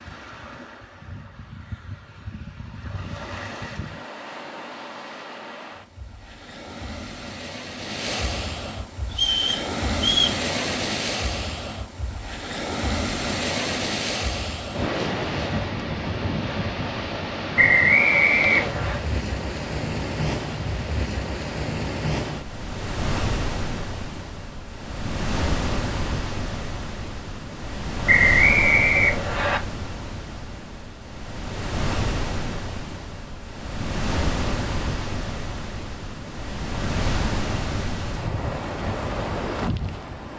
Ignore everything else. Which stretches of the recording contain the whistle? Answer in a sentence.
The whistle can be heard from 9.1 to 10.4 s, from 17.6 to 19.0 s and from 28.1 to 29.6 s.